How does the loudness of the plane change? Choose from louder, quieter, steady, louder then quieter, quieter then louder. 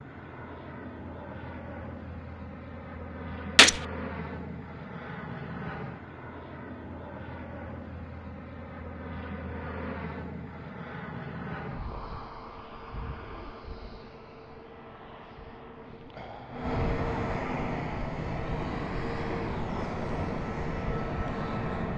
louder.